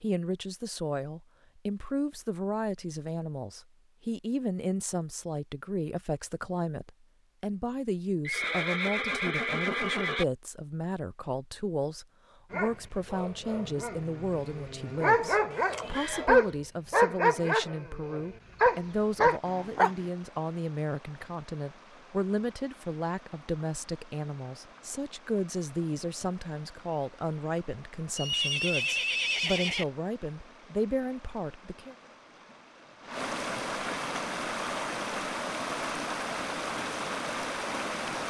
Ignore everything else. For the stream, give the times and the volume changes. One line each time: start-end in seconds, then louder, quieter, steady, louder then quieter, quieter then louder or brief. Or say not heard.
18.7-38.2 louder.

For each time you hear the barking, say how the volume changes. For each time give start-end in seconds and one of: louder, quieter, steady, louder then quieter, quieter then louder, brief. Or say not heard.
12.5-19.9 louder.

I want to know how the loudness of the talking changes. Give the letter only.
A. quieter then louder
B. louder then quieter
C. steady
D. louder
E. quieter
C.